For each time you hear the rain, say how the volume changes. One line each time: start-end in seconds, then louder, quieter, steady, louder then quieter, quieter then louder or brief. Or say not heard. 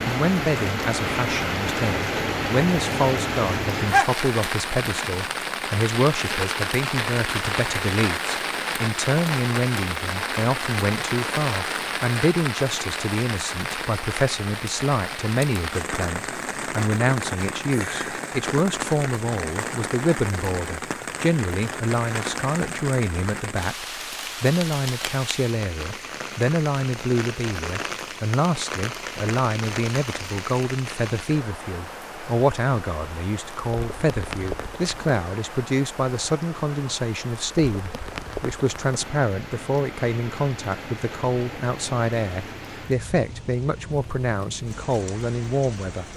0.0-46.1 quieter.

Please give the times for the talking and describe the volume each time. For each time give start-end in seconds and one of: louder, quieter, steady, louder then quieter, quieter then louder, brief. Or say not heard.
0.0-46.1 steady.